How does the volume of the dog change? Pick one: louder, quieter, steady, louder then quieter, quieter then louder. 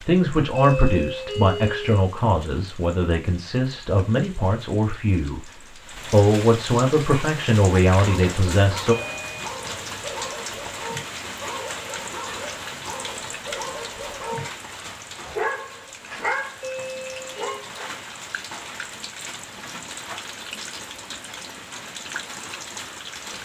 louder.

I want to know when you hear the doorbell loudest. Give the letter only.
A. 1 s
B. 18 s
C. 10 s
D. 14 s
A.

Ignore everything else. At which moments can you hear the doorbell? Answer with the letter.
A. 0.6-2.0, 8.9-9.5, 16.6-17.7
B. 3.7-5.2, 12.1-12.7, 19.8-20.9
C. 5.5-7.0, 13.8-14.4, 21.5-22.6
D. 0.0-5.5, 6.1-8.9
A.